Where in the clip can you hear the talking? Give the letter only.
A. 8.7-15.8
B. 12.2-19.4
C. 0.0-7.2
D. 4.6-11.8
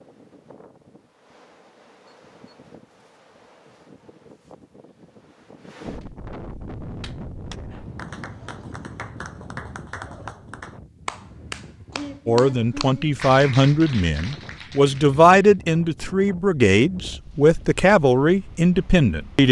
B.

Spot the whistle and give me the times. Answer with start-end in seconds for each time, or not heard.
not heard.